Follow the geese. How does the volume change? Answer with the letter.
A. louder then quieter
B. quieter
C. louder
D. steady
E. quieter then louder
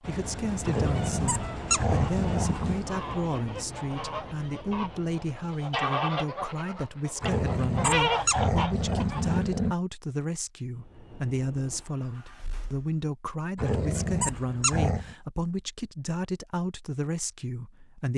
C.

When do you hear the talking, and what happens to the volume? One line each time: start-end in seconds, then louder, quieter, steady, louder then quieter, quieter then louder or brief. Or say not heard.
0.1-18.1 steady.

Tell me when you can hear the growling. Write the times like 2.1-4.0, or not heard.
0.7-2.8, 7.2-9.8, 13.6-15.2.